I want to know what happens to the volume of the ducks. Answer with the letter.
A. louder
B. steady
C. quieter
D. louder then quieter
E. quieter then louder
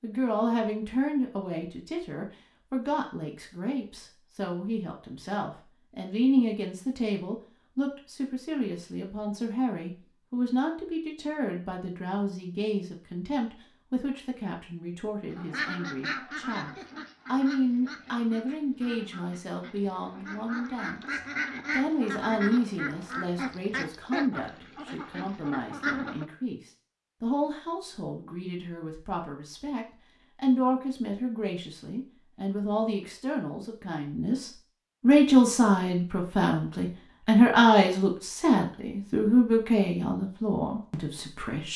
E.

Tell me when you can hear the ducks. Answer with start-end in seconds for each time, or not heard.
15.3-26.2.